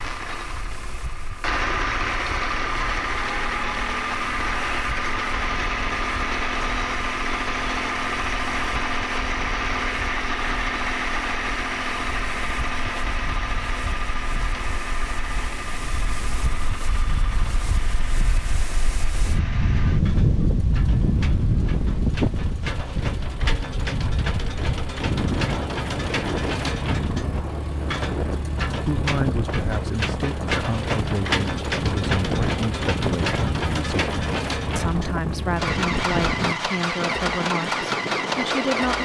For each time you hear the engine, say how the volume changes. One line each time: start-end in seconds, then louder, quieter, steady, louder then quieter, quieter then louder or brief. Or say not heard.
0.0-39.0 quieter then louder.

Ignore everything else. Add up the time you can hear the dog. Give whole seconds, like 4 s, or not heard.
not heard.